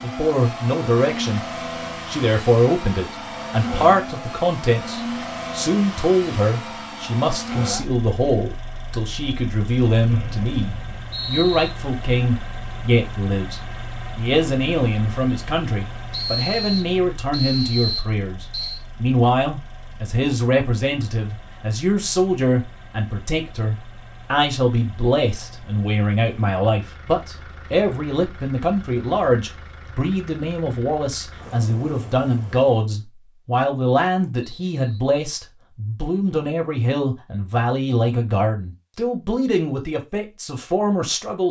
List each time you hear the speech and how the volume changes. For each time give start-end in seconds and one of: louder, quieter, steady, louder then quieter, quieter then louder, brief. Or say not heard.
0.0-1.4 brief
2.0-41.4 steady.